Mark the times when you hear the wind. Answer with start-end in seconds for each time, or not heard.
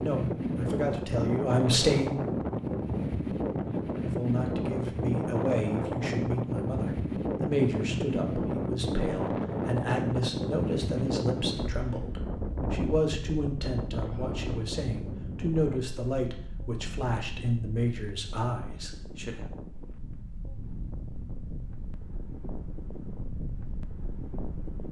0.0-24.8.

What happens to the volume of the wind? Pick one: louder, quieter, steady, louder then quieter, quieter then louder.
quieter.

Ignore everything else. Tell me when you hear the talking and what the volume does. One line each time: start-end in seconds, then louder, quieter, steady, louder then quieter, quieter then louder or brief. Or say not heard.
0.0-2.3 brief
4.0-19.4 steady.